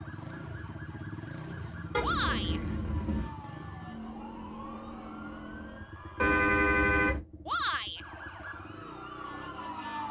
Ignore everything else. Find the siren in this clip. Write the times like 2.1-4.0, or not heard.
0.0-6.4, 8.0-10.0.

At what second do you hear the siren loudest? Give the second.
10 s.